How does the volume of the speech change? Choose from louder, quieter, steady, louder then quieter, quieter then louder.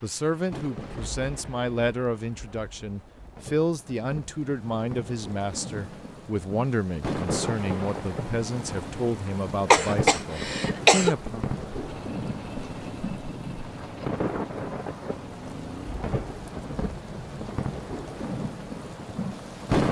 steady.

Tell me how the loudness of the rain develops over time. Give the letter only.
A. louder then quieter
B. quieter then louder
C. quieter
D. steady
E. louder
E.